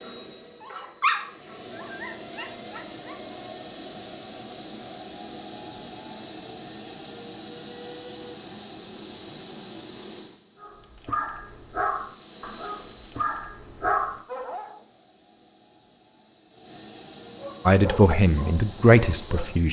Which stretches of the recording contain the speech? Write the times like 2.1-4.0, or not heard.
17.6-19.6.